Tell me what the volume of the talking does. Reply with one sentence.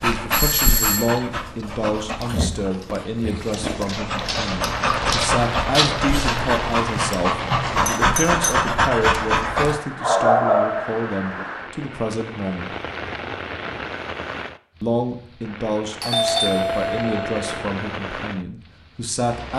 The volume of the talking stays about the same.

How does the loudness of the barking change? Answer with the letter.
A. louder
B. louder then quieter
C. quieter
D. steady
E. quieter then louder
A.